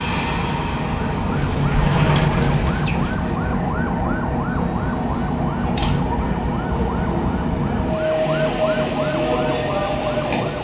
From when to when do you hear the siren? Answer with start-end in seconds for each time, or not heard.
0.0-10.5.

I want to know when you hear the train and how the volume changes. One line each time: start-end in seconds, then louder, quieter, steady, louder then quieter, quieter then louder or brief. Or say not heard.
0.0-10.5 steady.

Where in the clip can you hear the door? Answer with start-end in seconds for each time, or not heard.
1.4-3.3, 5.8-6.2.